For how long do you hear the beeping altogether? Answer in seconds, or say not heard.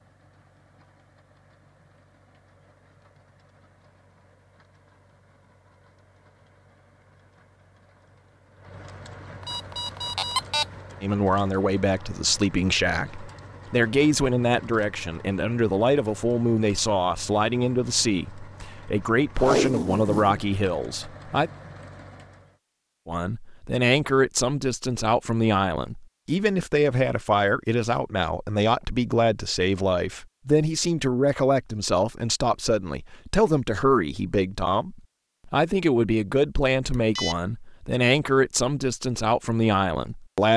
2 s.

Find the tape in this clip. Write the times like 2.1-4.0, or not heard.
19.4-20.4.